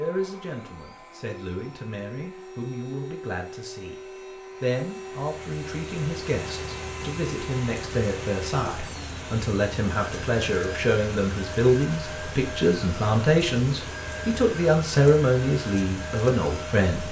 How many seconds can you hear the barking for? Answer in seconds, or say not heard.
not heard.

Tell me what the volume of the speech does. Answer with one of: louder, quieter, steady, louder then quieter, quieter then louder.
louder.